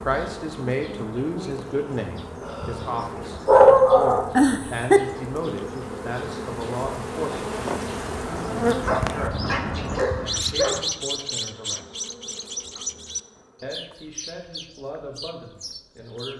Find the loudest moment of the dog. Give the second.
4 s.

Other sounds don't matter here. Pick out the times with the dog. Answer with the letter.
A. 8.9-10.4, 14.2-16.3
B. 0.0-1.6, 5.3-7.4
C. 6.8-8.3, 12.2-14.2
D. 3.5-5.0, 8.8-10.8
D.